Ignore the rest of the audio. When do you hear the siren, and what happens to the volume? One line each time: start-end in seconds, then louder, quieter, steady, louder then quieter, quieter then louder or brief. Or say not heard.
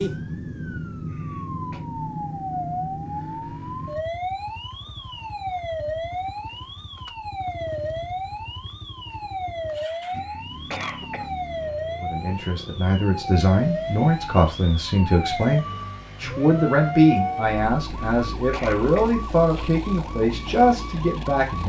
0.0-21.6 steady.